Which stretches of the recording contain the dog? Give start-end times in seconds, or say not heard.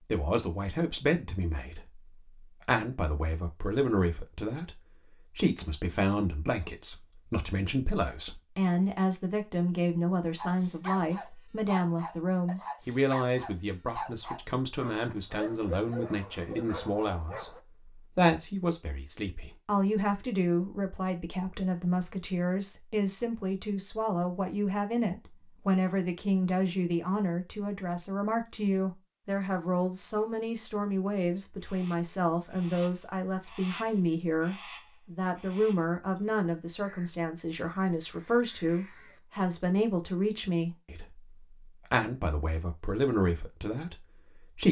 10.3-17.6.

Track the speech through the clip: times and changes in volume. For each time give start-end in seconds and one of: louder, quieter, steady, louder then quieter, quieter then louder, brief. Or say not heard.
0.1-44.6 steady.